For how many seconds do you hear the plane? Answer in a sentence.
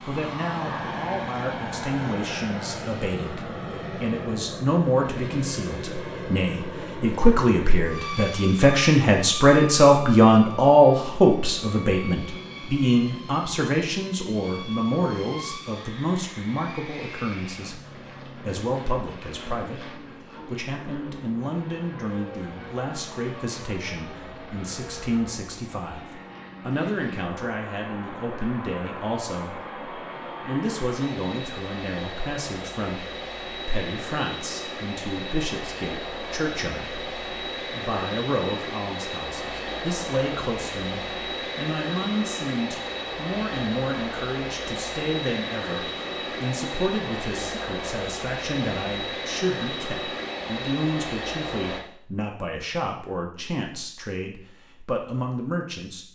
The plane can be heard for 52 seconds in total.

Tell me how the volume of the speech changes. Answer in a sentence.
The volume of the speech goes down.